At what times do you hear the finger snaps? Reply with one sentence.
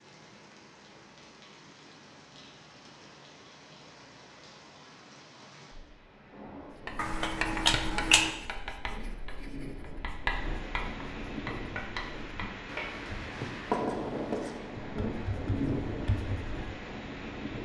The finger snaps can be heard from 7.0 to 8.3 s.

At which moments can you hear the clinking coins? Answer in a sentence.
The clinking coins can't be heard in this clip.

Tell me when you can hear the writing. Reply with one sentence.
You can hear the writing from 6.7 to 16.6 s.